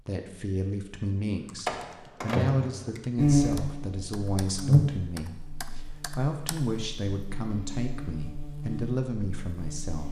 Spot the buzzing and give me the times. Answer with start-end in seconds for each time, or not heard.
3.1-10.0.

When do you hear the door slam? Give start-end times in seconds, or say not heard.
1.6-2.9.